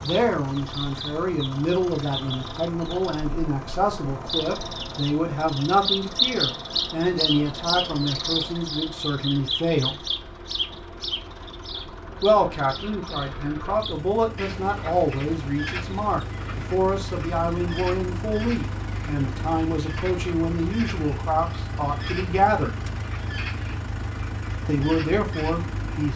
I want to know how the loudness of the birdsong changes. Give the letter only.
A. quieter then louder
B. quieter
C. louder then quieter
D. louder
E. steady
C.